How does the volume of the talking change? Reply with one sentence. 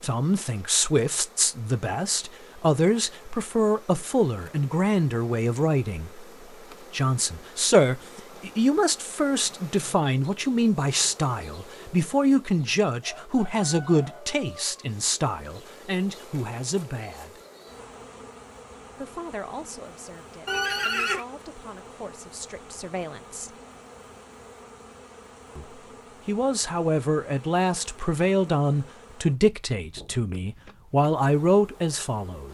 The loudness of the talking goes down, then up.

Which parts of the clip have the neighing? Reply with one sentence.
You can hear the neighing from 20.4 to 21.2 s.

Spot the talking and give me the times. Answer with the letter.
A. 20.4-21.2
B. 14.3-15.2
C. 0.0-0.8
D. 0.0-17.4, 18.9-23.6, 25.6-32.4
D.